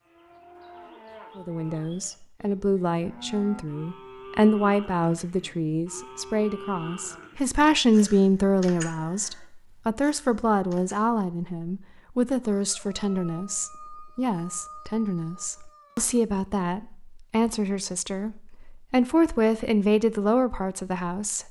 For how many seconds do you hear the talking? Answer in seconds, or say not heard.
20 s.